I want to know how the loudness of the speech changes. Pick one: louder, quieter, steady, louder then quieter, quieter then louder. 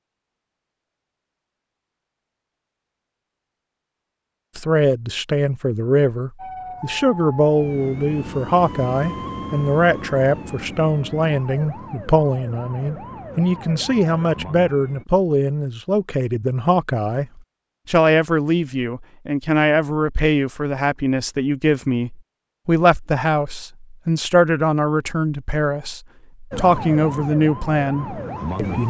steady.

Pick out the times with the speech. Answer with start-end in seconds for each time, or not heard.
4.5-28.8.